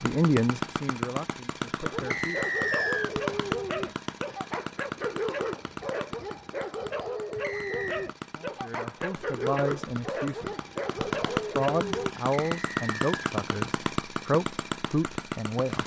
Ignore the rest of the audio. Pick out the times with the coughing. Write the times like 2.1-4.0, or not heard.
not heard.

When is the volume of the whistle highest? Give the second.
3 s.